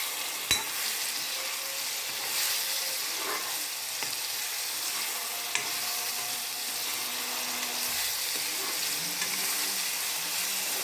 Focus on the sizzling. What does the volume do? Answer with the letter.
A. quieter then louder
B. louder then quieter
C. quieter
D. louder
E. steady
E.